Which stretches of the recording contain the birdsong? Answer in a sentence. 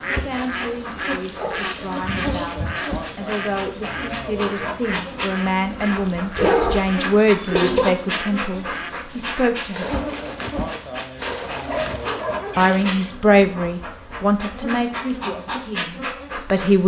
You can hear the birdsong from 0.0 to 13.2 s.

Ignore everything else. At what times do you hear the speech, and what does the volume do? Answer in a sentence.
The speech can be heard from 0.1 to 10.0 s, getting louder; and from 12.6 to 16.8 s, getting quieter.